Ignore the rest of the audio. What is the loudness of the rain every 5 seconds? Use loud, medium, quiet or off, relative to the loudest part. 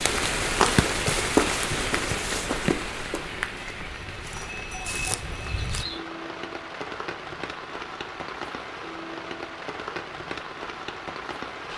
loud, medium, medium.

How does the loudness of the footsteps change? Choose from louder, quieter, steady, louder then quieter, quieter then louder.
quieter then louder.